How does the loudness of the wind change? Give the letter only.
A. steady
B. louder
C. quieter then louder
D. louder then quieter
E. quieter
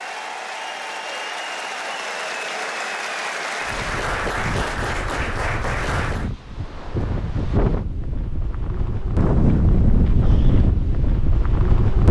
B.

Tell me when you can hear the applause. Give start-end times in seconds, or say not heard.
0.0-6.3.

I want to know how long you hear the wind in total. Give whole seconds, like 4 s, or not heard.
8 s.